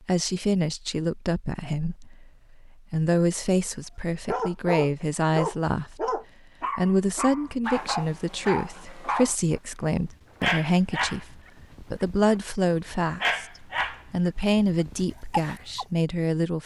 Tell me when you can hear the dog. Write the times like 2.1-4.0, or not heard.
4.2-15.8.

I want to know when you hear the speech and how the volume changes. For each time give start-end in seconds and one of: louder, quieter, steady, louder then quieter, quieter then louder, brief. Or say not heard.
0.1-16.6 steady.